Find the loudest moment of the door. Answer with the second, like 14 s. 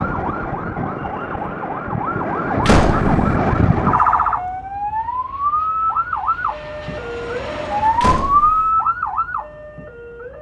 3 s.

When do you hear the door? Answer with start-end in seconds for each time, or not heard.
2.6-3.1, 8.0-8.7.